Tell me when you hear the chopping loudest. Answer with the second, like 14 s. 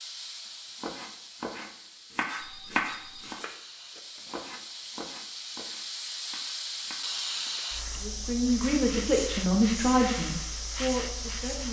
3 s.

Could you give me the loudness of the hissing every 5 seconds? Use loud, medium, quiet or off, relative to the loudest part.
medium, loud, loud.